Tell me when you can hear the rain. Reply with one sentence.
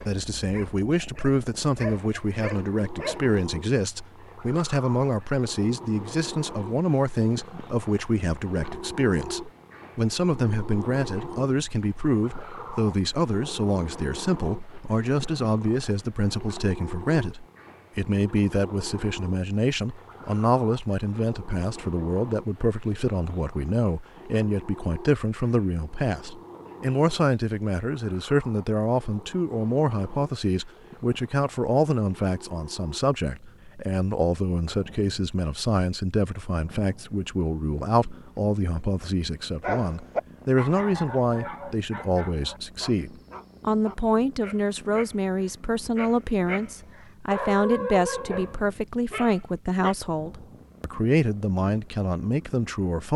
The rain can't be heard in this clip.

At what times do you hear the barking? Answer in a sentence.
The barking can be heard from 0.0 to 3.2 s and from 39.6 to 50.0 s.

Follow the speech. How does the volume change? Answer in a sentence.
The volume of the speech stays about the same.